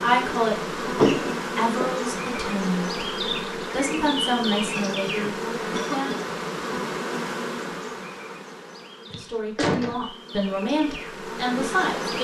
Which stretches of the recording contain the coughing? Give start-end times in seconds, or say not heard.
0.8-1.9, 4.7-6.3, 9.1-9.9.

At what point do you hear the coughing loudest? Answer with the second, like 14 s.
1 s.